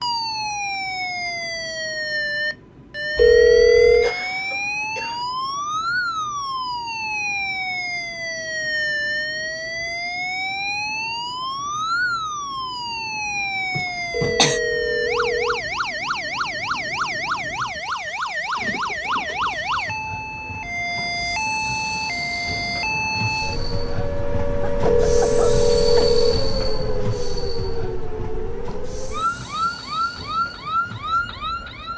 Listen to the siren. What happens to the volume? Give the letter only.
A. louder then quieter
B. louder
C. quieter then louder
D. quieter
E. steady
E.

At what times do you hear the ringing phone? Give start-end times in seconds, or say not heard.
3.1-4.2, 14.1-15.6, 24.8-26.4.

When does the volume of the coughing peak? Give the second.
14 s.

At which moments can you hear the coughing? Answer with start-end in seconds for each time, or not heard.
4.0-5.2, 13.8-14.6, 24.6-26.1.